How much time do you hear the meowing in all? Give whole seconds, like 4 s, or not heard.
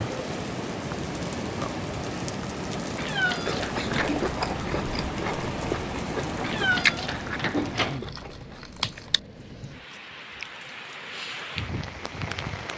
3 s.